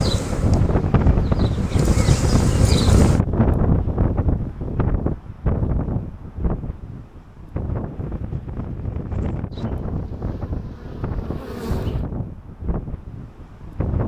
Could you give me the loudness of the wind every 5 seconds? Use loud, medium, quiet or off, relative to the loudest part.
loud, medium, medium.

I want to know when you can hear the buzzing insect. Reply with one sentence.
The buzzing insect can be heard from 0.0 to 3.2 s and from 9.5 to 12.1 s.